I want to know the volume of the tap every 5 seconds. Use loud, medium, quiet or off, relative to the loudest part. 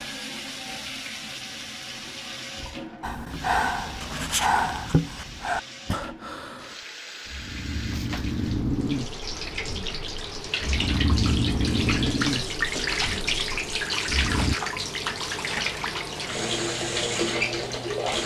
medium, medium, loud, loud.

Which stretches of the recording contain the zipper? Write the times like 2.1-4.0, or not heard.
not heard.